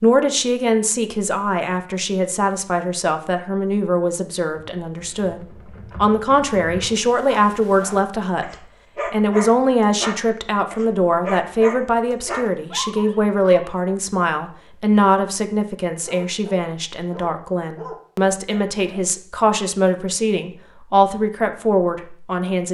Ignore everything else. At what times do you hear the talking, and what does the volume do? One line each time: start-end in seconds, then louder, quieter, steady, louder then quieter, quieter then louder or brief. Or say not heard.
0.0-22.6 steady.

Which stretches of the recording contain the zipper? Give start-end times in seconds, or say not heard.
not heard.